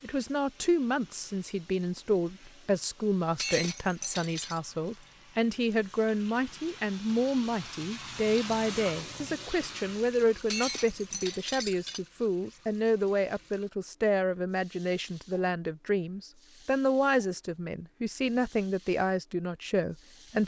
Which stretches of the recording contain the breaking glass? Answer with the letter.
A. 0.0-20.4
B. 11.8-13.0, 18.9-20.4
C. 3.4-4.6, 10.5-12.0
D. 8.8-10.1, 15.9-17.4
C.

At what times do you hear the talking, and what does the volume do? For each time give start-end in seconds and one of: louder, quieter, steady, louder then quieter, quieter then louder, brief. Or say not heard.
0.0-20.4 steady.